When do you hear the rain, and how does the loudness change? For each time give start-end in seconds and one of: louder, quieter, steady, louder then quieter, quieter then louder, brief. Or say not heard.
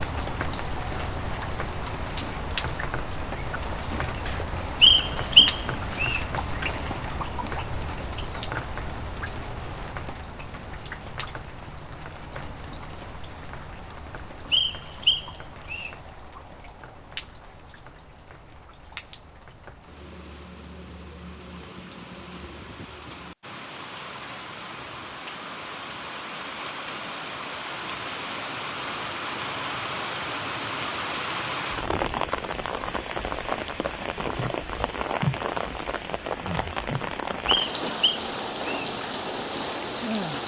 0.0-40.4 quieter then louder.